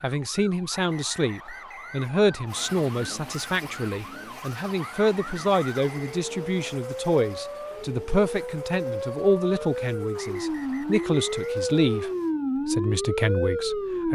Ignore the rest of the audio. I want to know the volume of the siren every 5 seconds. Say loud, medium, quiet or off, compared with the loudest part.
quiet, medium, loud.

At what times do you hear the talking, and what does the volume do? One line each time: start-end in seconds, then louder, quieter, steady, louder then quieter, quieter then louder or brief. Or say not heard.
0.0-14.1 steady.